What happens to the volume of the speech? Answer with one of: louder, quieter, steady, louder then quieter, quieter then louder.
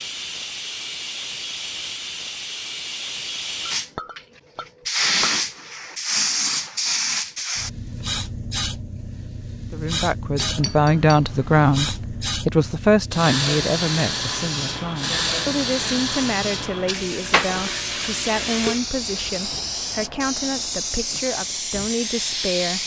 quieter.